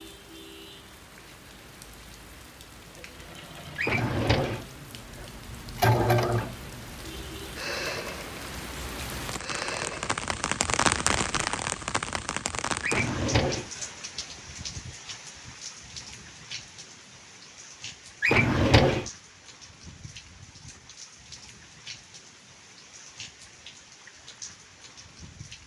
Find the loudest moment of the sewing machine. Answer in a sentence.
The loudest moment of the sewing machine is at 6 seconds.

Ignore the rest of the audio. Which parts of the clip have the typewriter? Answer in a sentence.
The typewriter can't be heard in this clip.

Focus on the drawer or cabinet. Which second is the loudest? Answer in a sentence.
The loudest moment of the drawer or cabinet is at 19 seconds.